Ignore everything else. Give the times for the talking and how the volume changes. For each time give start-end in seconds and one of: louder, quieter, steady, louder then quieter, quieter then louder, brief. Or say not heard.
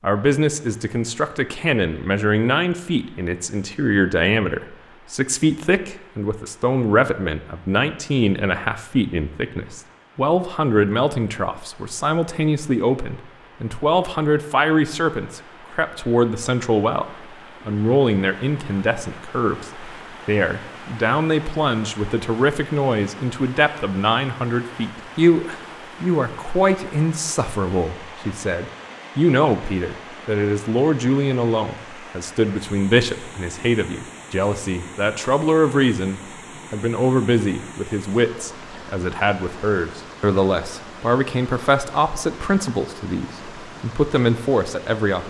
0.0-17.1 steady
17.6-45.2 steady.